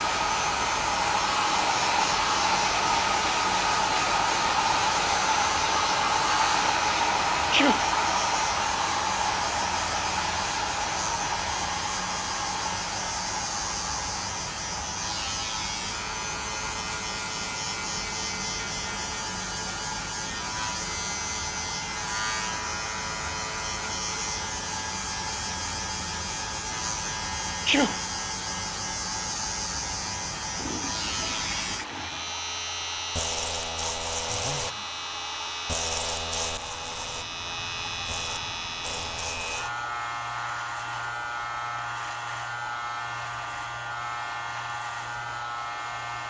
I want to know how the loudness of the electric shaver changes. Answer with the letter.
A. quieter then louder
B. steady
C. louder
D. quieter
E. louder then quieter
B.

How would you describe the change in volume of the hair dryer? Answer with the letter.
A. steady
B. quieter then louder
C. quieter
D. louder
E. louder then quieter
C.